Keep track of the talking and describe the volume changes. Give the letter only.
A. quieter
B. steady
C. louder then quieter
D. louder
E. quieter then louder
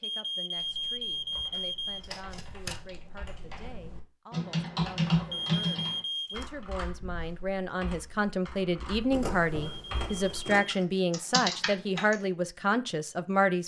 D.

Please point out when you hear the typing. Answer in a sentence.
You can hear the typing from 0.6 to 12.2 s.